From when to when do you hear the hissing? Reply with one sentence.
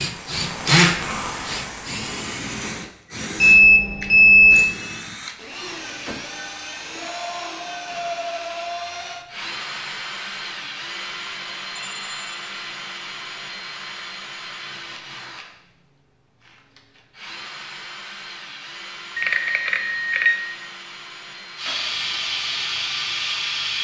You can hear the hissing from 0.0 to 2.6 s and from 21.6 to 23.7 s.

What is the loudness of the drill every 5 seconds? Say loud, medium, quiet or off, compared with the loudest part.
loud, medium, medium, quiet, quiet.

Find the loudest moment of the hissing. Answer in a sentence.
The loudest moment of the hissing is at 23 seconds.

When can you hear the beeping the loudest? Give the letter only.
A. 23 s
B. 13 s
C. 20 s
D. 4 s
D.